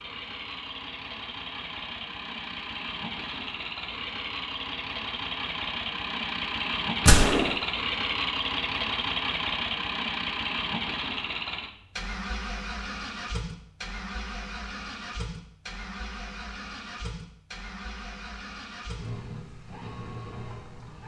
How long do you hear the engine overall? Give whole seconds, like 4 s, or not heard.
21 s.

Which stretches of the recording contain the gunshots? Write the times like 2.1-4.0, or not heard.
7.0-7.5.